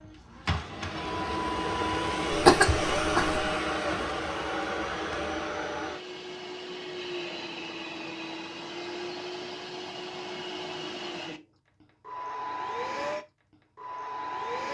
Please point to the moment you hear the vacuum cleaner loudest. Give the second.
3 s.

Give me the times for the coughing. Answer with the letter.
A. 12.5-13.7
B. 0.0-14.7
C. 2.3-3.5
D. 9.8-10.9
C.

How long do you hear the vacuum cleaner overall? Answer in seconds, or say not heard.
15 s.